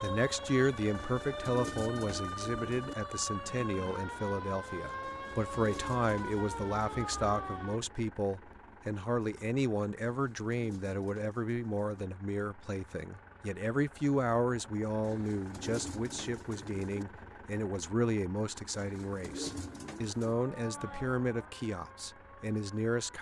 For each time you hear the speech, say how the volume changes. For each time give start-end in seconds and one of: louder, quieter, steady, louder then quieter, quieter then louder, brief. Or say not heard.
0.0-23.1 steady.